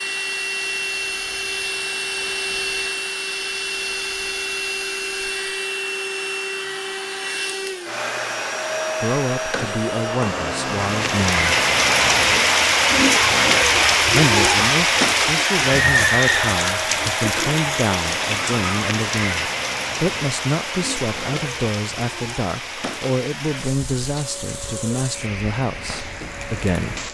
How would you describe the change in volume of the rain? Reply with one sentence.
The loudness of the rain goes down.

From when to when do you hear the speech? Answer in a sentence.
You can hear the speech from 9.0 to 11.6 s and from 14.1 to 27.0 s.